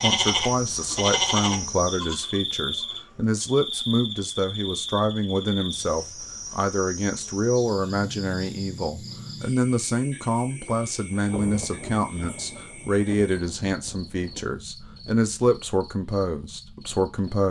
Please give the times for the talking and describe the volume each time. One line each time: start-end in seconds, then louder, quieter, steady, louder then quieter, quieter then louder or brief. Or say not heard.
0.0-17.4 steady.